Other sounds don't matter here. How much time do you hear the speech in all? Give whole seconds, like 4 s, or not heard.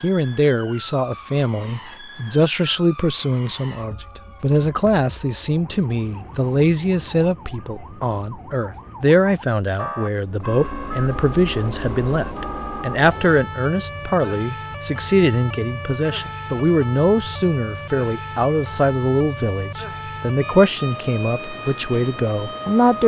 23 s.